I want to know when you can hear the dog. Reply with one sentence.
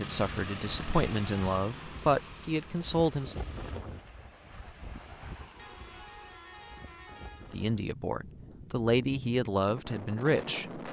You can't hear the dog here.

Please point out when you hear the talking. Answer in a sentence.
You can hear the talking from 0.0 to 3.4 s and from 7.5 to 10.8 s.